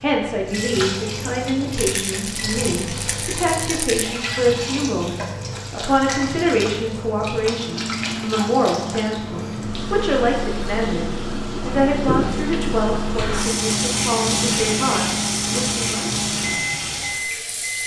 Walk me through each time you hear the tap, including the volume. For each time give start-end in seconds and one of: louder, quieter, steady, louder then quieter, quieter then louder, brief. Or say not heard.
0.0-17.8 louder.